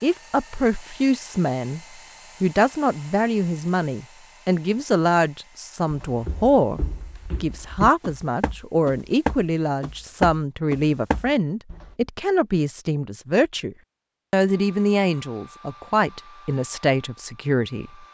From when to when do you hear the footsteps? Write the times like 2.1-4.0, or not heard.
5.9-11.9.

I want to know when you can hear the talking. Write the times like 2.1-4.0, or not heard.
0.0-1.8, 2.4-6.8, 7.4-17.9.